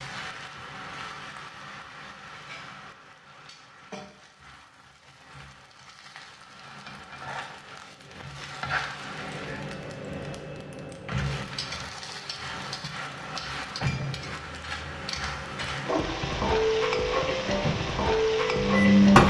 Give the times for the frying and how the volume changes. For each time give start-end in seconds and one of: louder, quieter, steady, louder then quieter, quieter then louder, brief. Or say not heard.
0.0-19.2 louder.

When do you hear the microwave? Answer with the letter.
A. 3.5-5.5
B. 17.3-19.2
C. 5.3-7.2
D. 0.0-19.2
B.